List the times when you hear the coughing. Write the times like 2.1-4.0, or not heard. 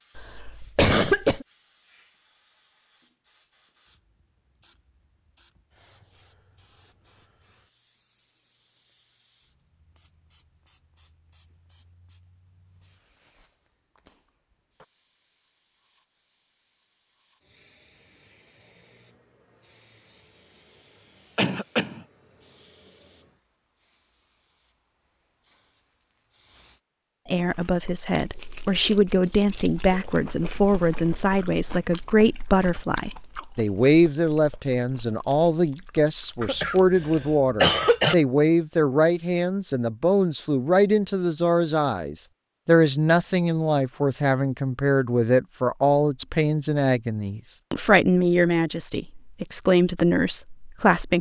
0.1-1.4, 21.4-22.0, 36.4-38.1.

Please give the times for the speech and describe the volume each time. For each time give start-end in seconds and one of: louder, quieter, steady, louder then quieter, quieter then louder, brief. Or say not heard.
27.3-51.1 steady.